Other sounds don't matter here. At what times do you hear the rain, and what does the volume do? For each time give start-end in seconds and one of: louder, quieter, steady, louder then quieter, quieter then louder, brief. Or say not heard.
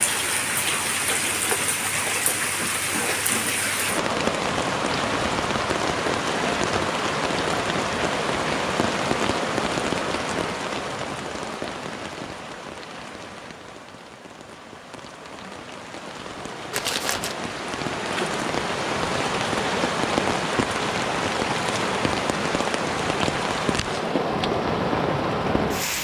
0.0-25.9 quieter then louder.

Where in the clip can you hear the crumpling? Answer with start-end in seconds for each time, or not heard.
16.7-17.4.